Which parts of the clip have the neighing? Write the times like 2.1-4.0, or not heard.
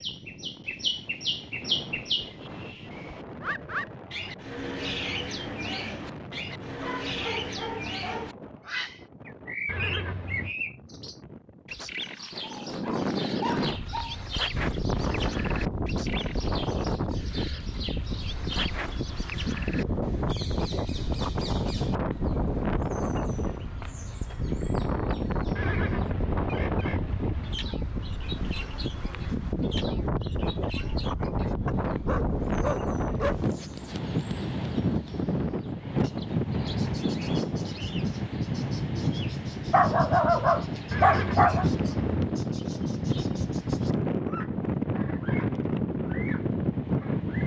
9.7-10.6, 25.6-27.6, 40.9-42.3.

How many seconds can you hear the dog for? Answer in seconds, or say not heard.
7 s.